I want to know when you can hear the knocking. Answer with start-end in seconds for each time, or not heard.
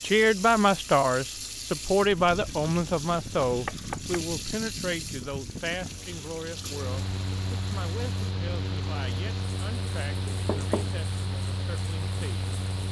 3.5-4.2, 10.2-10.9.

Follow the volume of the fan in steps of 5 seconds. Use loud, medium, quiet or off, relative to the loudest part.
medium, loud, loud.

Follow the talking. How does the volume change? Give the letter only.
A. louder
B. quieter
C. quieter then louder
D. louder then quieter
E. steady
B.